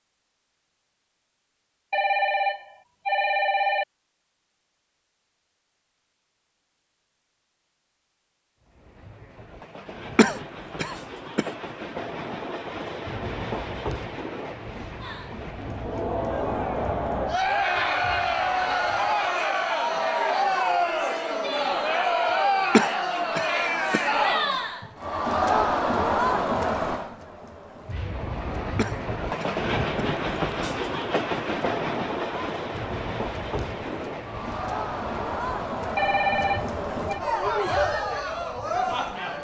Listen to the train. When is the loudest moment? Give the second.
30 s.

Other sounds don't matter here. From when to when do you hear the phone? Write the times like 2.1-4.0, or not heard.
1.9-3.9, 36.0-37.2.